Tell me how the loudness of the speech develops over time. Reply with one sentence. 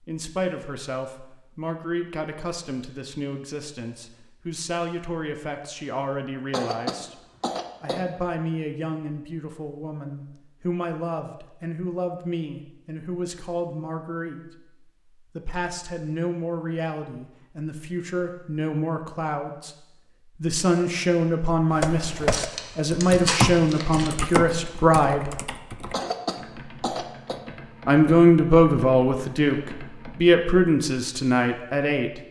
The volume of the speech goes up.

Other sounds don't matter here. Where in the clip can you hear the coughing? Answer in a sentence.
The coughing can be heard from 6.5 to 8.2 s and from 25.9 to 27.4 s.